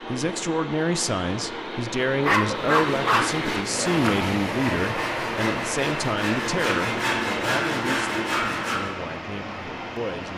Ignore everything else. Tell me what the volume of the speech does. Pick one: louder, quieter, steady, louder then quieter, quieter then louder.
quieter.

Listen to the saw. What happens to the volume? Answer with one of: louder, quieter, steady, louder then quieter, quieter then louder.
louder.